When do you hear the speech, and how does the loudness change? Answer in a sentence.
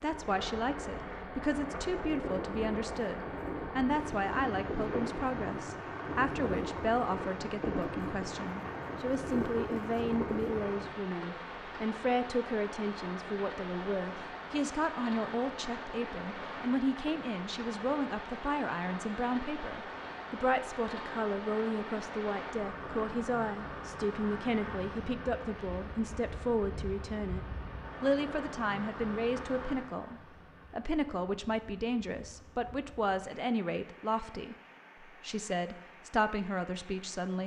The speech can be heard from 0.0 to 37.4 s, at a steady volume.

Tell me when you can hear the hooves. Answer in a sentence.
You can hear the hooves from 2.0 to 10.7 s.